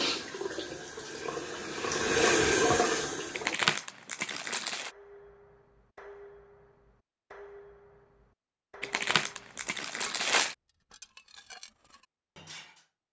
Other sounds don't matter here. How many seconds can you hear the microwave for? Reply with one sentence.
The microwave can't be heard in this clip.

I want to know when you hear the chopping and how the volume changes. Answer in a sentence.
The chopping can't be heard in this clip.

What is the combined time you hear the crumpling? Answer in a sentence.
The crumpling can be heard for 3 seconds in total.